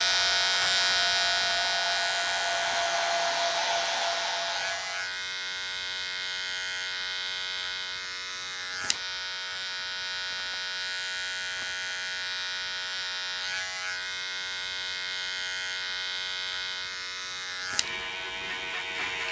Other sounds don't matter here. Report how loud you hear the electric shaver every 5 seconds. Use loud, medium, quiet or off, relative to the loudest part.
loud, medium, medium, medium.